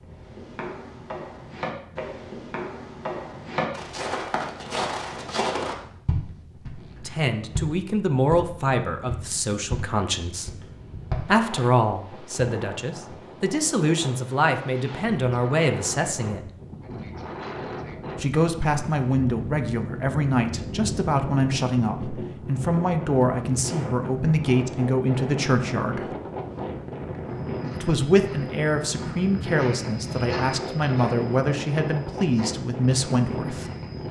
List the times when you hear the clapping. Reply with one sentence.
You can't hear the clapping here.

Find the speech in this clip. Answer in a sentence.
You can hear the speech from 7.0 to 10.5 s, from 11.2 to 16.4 s, from 18.2 to 26.1 s and from 27.8 to 33.6 s.